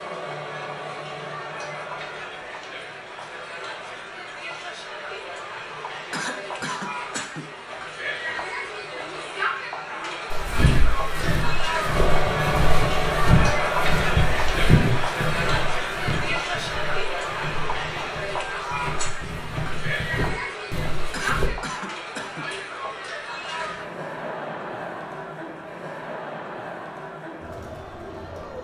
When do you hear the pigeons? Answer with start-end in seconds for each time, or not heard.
not heard.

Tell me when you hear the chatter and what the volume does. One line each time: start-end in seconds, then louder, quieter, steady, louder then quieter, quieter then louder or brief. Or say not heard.
0.0-28.5 louder then quieter.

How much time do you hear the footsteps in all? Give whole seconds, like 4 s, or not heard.
11 s.